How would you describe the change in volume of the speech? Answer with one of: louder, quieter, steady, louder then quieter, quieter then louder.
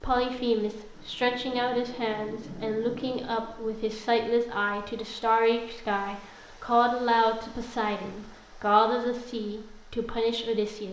steady.